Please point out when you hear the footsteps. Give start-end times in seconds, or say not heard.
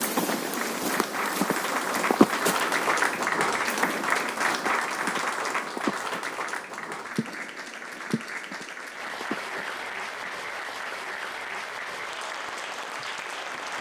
0.0-10.4.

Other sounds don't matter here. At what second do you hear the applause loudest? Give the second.
3 s.